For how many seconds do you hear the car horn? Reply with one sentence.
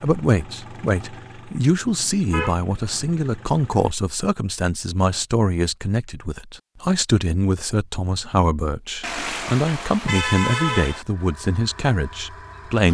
The car horn can be heard for 3 seconds in total.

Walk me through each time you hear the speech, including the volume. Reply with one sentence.
You can hear the speech from 0.0 to 12.9 s, at a steady volume.